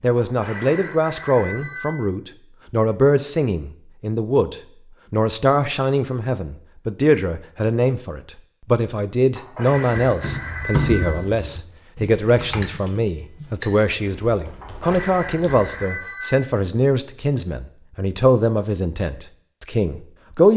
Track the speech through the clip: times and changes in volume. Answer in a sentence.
The speech can be heard from 0.0 to 20.5 s, at a steady volume.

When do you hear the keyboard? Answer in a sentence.
You can hear the keyboard from 9.9 to 15.7 s.